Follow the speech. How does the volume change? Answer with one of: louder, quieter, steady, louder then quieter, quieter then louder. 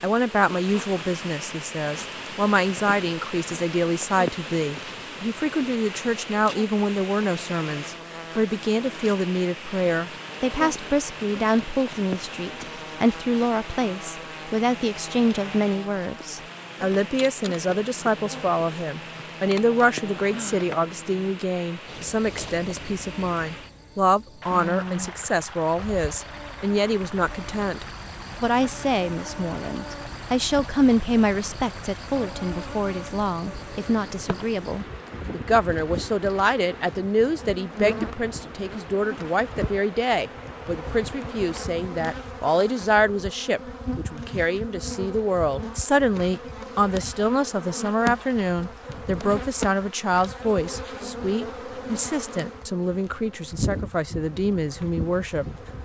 steady.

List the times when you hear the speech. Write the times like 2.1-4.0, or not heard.
0.0-55.8.